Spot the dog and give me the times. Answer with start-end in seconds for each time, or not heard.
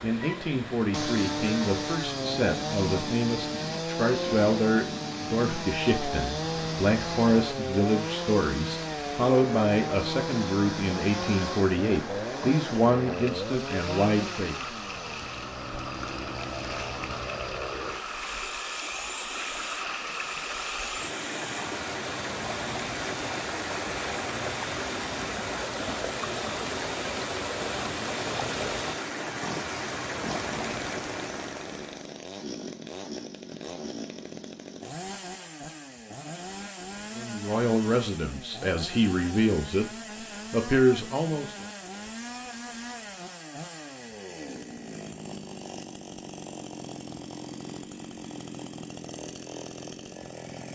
not heard.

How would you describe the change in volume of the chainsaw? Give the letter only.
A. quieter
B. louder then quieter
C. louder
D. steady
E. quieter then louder
A.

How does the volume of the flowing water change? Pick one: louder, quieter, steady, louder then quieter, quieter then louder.
louder.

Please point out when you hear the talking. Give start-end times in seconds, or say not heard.
0.0-14.6, 37.1-39.9, 40.5-41.6.